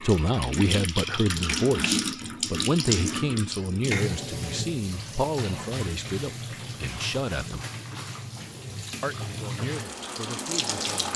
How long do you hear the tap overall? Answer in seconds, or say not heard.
11 s.